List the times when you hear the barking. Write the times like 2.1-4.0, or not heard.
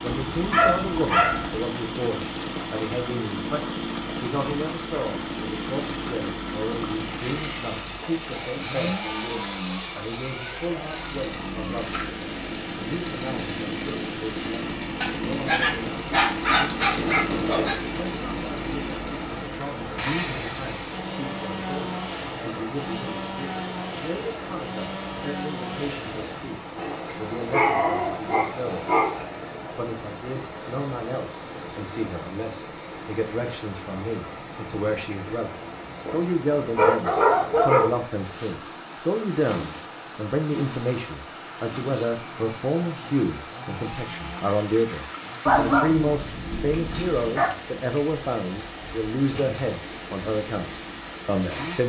0.1-1.6, 15.0-17.8, 26.8-29.2, 36.0-37.9, 45.5-47.5.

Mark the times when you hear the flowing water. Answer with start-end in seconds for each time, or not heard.
0.0-51.8.